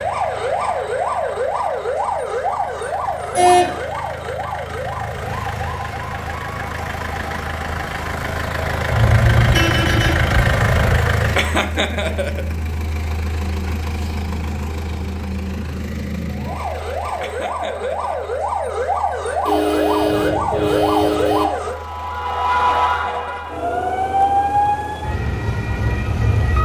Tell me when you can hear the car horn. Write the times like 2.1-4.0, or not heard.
3.3-3.8, 8.9-10.9, 19.4-21.4.